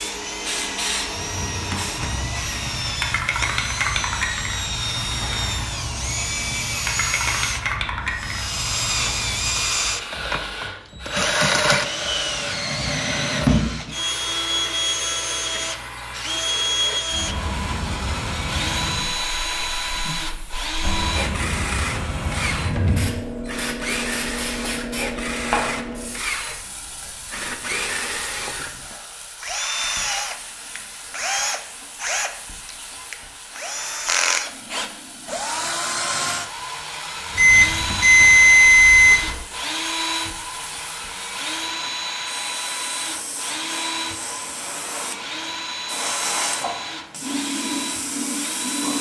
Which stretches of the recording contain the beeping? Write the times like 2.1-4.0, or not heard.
37.4-39.4.